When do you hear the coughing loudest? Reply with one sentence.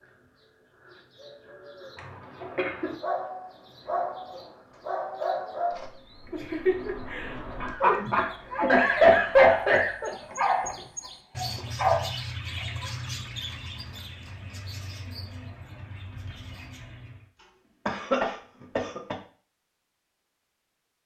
The loudest moment of the coughing is at 9 seconds.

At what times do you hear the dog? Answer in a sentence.
You can hear the dog from 3.0 to 12.9 s.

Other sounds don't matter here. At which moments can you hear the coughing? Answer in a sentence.
The coughing can be heard from 1.9 to 3.0 s, from 7.6 to 10.1 s and from 17.4 to 19.1 s.